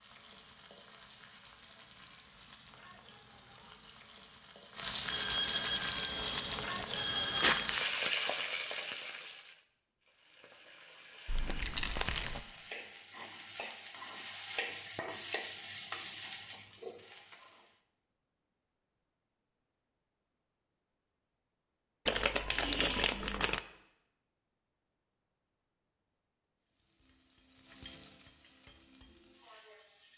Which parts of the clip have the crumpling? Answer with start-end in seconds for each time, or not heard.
7.3-7.8, 11.2-12.4, 22.1-23.6.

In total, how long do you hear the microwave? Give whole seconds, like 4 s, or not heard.
not heard.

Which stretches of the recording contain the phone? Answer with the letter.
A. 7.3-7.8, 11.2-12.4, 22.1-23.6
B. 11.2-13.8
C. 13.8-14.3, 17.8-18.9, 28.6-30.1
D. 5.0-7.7
D.